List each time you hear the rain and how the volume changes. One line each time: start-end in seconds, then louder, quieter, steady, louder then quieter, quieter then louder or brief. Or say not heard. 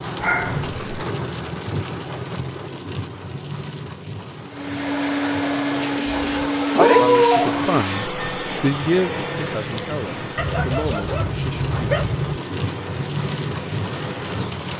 0.0-14.7 quieter then louder.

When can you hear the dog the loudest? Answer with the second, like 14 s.
7 s.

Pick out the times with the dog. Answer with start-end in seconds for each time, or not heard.
0.2-0.8, 6.0-7.6, 10.3-12.4.